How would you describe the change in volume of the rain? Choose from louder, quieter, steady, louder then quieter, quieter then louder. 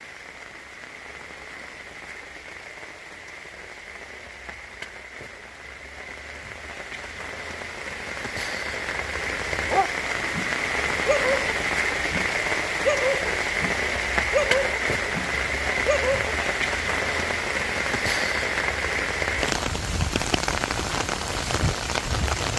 louder.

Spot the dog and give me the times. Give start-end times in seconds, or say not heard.
9.6-16.4.